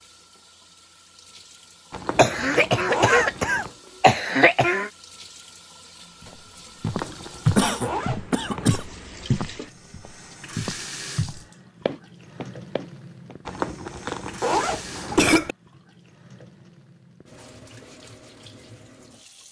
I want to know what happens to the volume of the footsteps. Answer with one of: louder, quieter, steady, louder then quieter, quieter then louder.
quieter.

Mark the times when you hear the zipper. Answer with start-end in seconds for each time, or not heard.
1.9-3.7, 6.8-8.8, 13.4-15.3.